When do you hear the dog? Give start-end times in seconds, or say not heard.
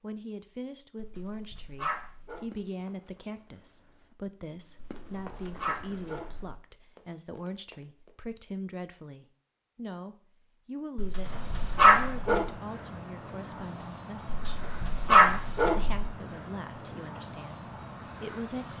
0.9-2.5, 4.8-6.5, 10.9-12.5, 14.2-16.1.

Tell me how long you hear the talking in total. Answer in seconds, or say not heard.
19 s.